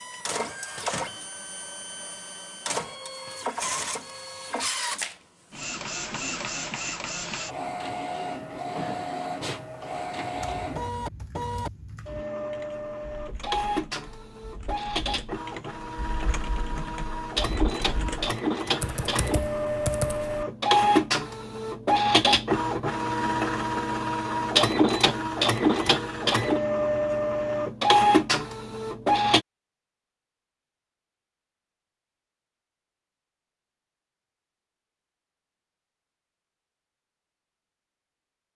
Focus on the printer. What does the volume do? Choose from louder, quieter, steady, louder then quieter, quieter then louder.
louder.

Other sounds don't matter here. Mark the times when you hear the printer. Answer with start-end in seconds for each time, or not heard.
0.0-29.4.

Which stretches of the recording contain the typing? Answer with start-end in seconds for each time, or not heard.
10.3-20.4.